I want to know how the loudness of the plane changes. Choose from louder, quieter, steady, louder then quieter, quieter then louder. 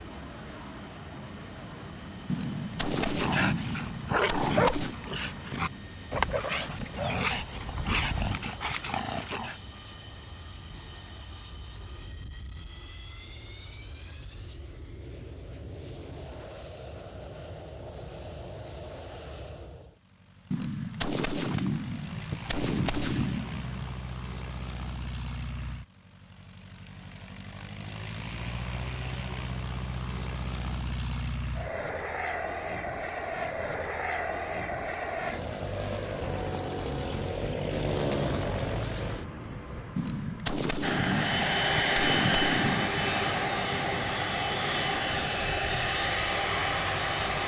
louder.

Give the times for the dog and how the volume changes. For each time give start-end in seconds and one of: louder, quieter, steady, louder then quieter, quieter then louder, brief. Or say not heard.
2.9-9.6 steady.